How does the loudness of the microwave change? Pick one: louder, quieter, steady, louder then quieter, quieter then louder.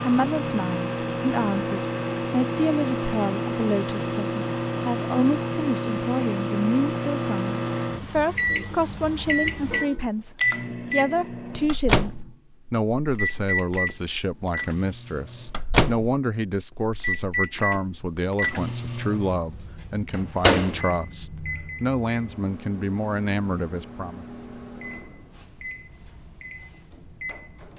quieter.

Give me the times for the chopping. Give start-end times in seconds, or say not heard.
not heard.